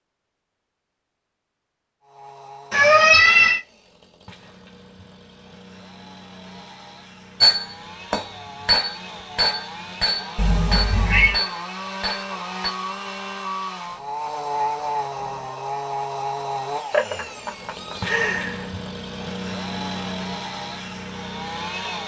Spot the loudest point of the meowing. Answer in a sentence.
The volume of the meowing peaks at 3 seconds.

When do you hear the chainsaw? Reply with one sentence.
The chainsaw can be heard from 2.0 to 22.0 s.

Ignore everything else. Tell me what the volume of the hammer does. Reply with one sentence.
The volume of the hammer goes up, then down.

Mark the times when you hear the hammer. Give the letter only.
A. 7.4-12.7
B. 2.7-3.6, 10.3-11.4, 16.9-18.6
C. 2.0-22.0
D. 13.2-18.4
A.